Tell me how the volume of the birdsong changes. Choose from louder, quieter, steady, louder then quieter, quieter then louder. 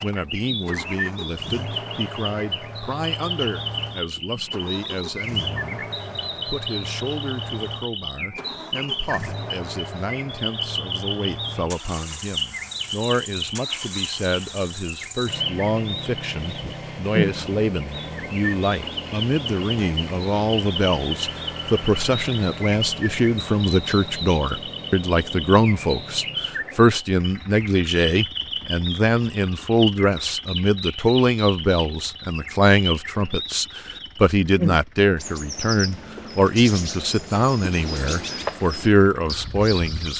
steady.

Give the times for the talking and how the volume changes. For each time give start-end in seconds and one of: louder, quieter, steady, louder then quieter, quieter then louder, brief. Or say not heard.
0.0-40.1 louder.